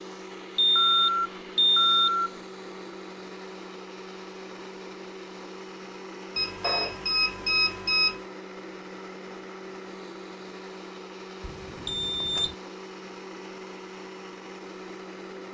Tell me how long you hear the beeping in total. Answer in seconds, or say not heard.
5 s.